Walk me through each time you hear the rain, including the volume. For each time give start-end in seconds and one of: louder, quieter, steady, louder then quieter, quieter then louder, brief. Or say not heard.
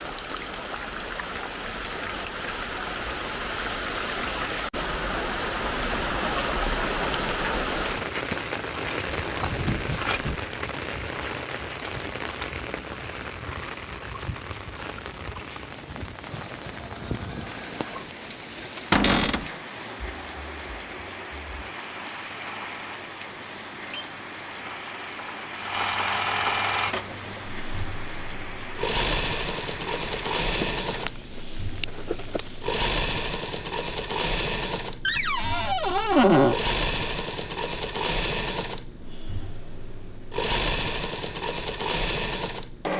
0.0-32.8 quieter.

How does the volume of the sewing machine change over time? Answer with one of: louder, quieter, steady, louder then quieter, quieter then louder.
louder.